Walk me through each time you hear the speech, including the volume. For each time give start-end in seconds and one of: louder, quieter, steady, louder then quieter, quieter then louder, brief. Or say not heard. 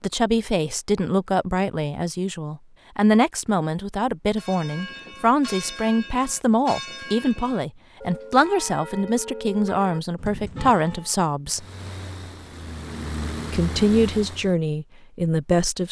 0.0-11.7 steady
13.5-15.8 brief.